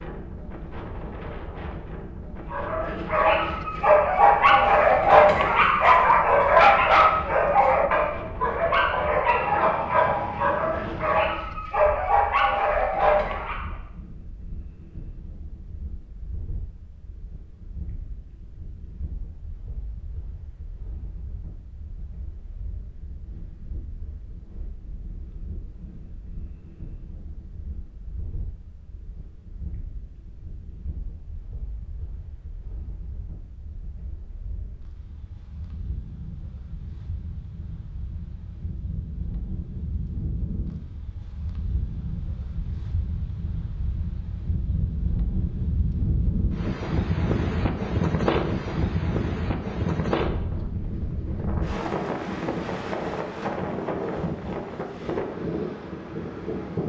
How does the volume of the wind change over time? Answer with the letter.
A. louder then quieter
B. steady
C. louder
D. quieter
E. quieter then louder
E.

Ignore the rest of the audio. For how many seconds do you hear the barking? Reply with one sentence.
You can hear the barking for 11 seconds altogether.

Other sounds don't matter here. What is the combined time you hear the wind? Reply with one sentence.
The wind can be heard for 57 seconds in total.